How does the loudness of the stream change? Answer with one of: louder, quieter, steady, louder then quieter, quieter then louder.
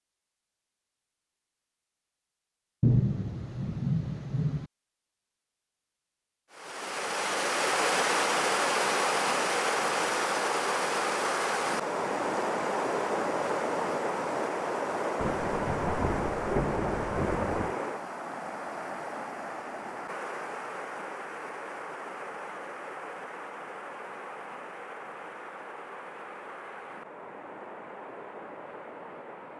quieter.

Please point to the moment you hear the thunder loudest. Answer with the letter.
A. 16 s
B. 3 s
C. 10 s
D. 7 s
B.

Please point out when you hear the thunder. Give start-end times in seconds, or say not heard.
2.8-4.7, 15.2-17.8.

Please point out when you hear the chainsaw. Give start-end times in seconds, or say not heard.
not heard.